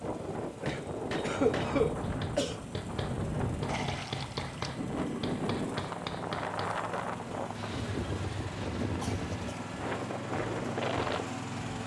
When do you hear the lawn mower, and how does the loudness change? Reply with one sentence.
You can hear the lawn mower from 0.0 to 11.8 s, getting louder.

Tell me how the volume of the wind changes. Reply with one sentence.
The volume of the wind stays about the same.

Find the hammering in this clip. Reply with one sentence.
The hammering can be heard from 0.7 to 6.7 s.